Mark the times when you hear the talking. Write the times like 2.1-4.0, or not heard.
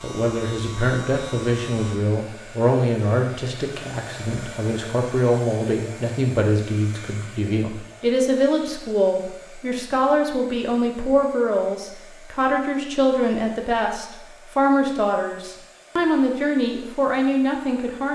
0.0-18.1.